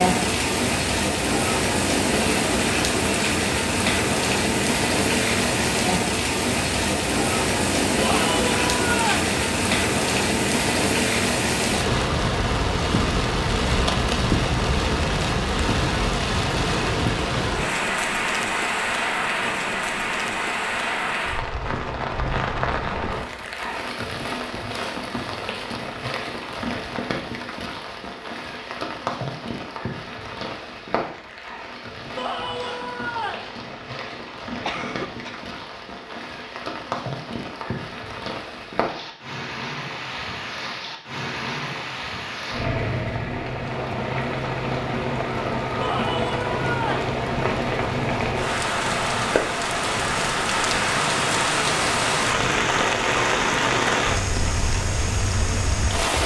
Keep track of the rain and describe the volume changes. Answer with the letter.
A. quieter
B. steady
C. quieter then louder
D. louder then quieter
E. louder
C.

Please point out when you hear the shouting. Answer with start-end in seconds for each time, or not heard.
8.0-9.3, 32.1-33.5, 45.8-47.0.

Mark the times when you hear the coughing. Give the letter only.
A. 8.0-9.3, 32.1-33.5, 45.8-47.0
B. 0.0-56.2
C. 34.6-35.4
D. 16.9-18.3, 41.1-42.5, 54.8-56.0
C.